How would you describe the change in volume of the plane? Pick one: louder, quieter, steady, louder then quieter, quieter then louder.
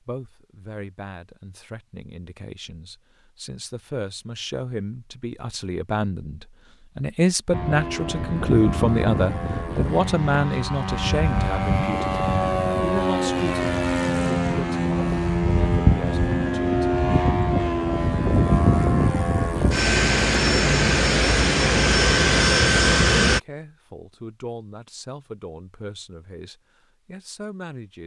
louder.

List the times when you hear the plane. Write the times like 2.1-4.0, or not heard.
7.5-23.4.